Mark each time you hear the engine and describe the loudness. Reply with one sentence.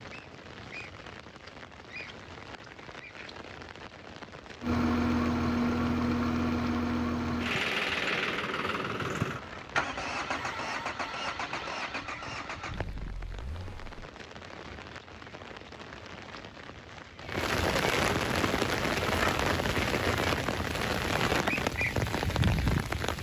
You can hear the engine from 4.6 to 14.1 s, getting quieter.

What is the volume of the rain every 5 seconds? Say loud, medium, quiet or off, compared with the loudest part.
quiet, quiet, quiet, loud, loud.